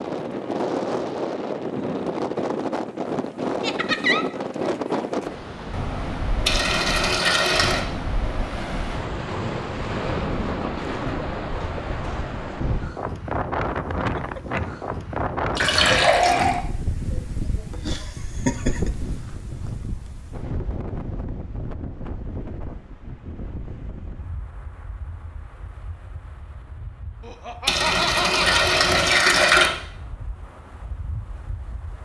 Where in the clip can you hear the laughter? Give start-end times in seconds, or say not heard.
3.6-4.2, 17.1-18.9, 27.2-28.6.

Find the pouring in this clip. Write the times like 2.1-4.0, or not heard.
6.5-7.8, 15.6-16.6, 27.6-29.7.